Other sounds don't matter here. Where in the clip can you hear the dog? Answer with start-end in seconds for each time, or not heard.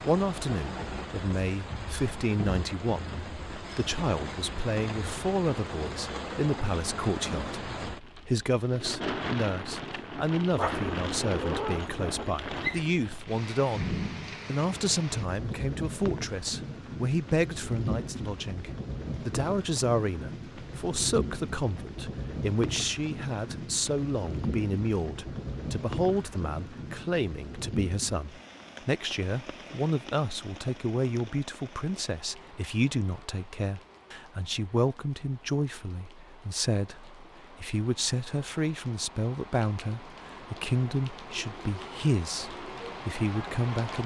10.6-12.8.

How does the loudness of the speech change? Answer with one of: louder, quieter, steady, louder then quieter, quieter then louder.
steady.